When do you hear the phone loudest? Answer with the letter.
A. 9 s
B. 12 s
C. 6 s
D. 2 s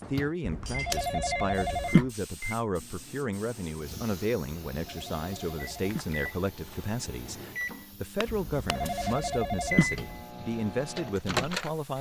D.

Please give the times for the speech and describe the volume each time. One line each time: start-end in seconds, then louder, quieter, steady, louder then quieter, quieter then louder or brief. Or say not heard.
0.1-11.9 steady.